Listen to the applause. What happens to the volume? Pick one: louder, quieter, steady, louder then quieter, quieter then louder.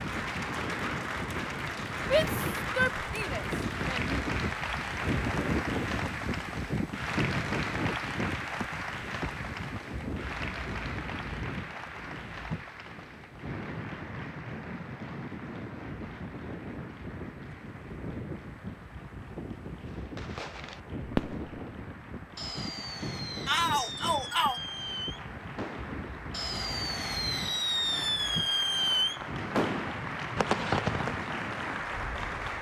quieter then louder.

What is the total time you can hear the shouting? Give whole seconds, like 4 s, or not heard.
3 s.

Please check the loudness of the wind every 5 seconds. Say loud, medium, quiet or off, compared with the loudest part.
loud, loud, medium, medium, medium, medium, medium.